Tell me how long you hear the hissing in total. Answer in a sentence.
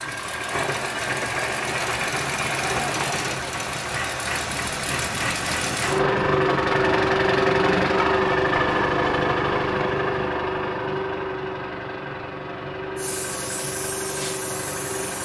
The hissing can be heard for 2 seconds in total.